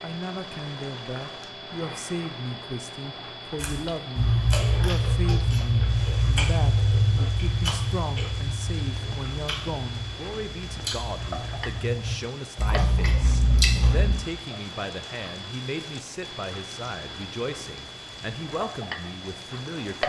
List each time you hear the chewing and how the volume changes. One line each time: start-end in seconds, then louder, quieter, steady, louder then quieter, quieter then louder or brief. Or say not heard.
3.5-14.2 quieter then louder.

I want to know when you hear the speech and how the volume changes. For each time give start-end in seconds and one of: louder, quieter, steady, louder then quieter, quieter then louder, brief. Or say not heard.
0.0-20.0 steady.